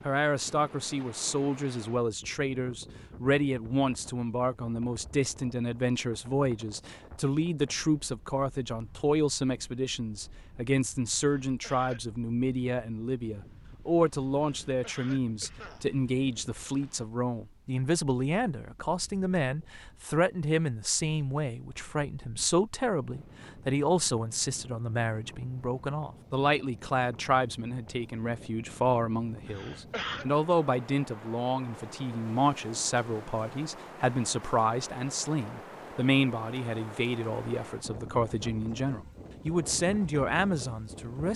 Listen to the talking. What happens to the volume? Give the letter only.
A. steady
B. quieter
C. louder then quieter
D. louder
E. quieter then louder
A.